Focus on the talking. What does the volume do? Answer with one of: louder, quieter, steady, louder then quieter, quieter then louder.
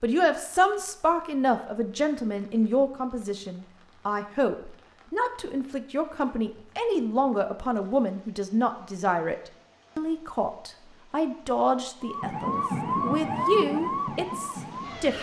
steady.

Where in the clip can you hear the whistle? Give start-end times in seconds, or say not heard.
not heard.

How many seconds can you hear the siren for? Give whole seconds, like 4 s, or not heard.
3 s.